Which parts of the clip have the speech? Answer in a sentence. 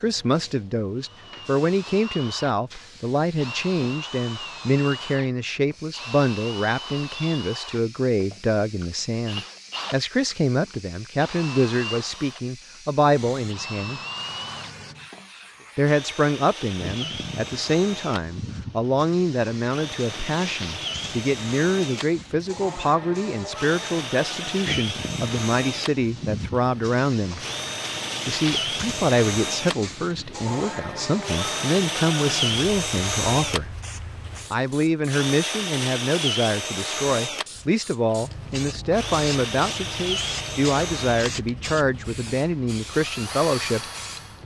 The speech can be heard from 0.0 to 14.0 s, from 15.8 to 27.4 s, from 28.2 to 33.7 s and from 34.5 to 43.8 s.